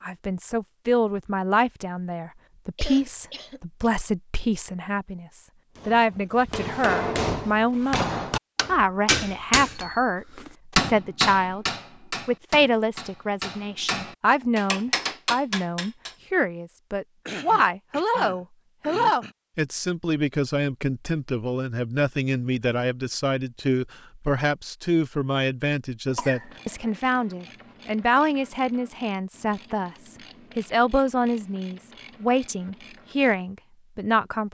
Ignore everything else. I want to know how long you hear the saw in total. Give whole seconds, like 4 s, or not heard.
not heard.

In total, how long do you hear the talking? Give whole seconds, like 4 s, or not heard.
34 s.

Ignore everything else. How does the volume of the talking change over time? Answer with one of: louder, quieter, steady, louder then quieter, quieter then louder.
steady.